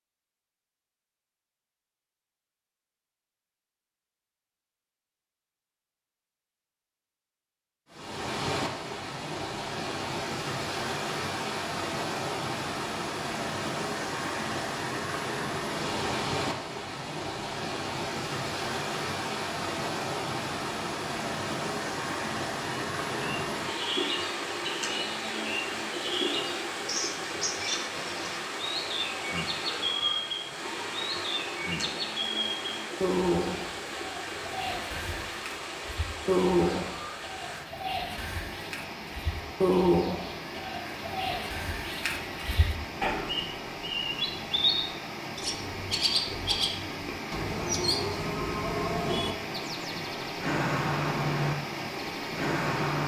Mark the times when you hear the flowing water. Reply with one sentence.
The flowing water can be heard from 7.9 to 53.0 s.